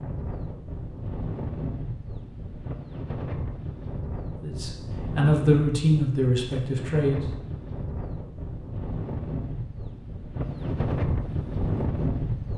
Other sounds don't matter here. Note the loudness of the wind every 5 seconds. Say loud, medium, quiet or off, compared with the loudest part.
medium, medium, loud.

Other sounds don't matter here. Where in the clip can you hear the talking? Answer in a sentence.
The talking can be heard from 4.4 to 7.2 s.